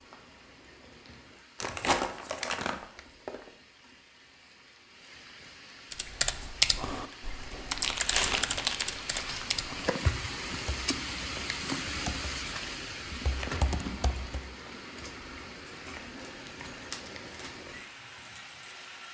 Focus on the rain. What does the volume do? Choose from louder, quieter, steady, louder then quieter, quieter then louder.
louder then quieter.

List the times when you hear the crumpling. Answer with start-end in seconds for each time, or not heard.
1.6-3.5, 7.8-9.5, 16.2-17.6.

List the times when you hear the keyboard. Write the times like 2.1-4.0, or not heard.
5.9-14.4.